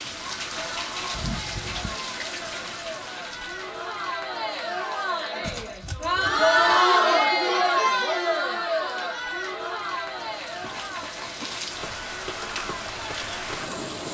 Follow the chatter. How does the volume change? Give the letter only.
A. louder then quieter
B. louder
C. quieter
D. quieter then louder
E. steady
A.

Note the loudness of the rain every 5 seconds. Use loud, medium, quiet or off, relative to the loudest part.
loud, quiet, loud.